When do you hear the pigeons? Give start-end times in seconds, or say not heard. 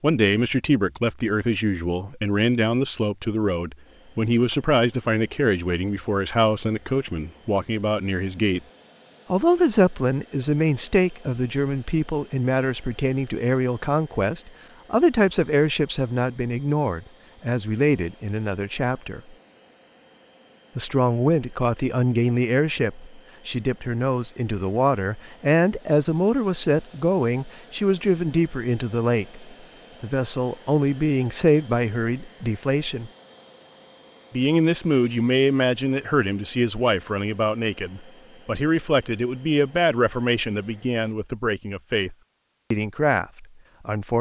not heard.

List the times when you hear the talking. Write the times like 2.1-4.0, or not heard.
0.0-8.6, 9.3-19.4, 20.8-33.1, 34.3-44.1.